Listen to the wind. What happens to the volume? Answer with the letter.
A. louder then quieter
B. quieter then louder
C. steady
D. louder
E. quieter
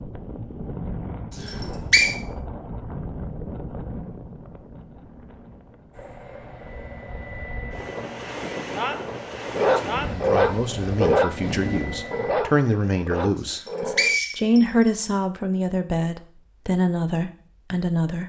B.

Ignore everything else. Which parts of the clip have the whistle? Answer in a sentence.
You can hear the whistle from 1.4 to 2.1 s and from 13.4 to 15.1 s.